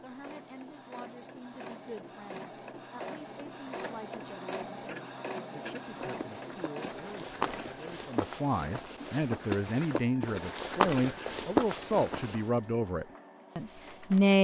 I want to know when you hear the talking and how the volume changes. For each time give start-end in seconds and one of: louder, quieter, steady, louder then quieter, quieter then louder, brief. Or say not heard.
0.0-14.3 louder.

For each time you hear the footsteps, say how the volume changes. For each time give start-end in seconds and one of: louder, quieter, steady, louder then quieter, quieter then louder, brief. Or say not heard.
6.0-12.4 louder.